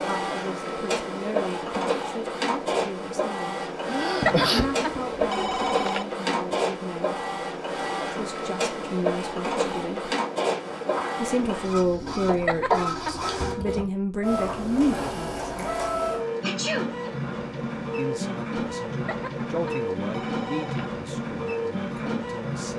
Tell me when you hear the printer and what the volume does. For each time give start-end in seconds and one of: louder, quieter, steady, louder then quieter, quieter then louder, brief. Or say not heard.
0.0-22.7 steady.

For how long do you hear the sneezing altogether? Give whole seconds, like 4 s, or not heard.
2 s.